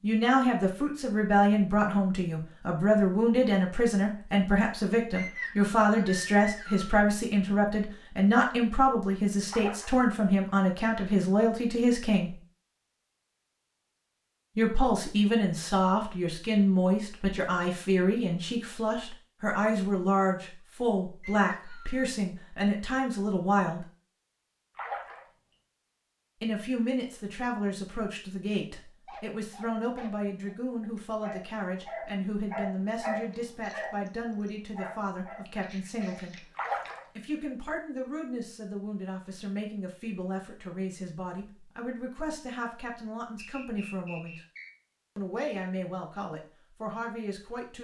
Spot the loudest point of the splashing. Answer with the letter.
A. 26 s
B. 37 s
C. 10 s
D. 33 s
B.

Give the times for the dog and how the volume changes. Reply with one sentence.
The dog can be heard from 29.1 to 37.0 s, getting louder then quieter.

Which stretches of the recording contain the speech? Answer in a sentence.
The speech can be heard from 0.0 to 12.3 s, from 14.6 to 23.9 s, from 26.4 to 36.5 s, from 37.1 to 44.4 s and from 45.1 to 47.7 s.